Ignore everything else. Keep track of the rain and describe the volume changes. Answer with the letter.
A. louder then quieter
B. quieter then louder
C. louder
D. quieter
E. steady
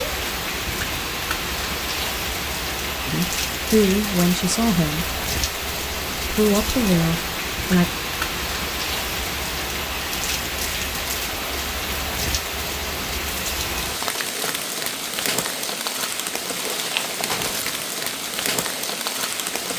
E.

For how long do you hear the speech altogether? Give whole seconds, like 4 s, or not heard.
4 s.